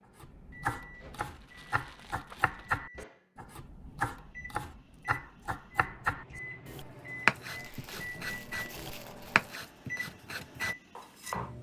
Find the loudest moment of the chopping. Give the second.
7 s.